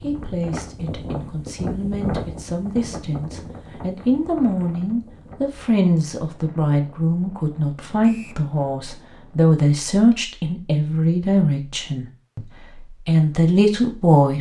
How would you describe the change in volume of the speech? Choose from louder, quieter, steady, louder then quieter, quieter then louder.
louder.